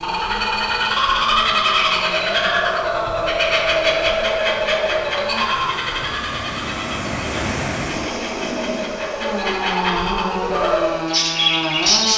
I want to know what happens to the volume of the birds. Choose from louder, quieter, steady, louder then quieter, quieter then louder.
quieter then louder.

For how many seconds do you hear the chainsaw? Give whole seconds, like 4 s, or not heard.
12 s.